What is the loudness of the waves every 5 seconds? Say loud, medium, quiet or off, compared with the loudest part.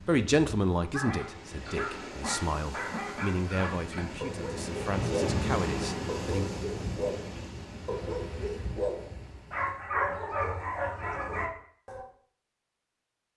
medium, loud, off.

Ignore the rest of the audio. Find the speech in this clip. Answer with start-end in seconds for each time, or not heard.
0.1-6.5.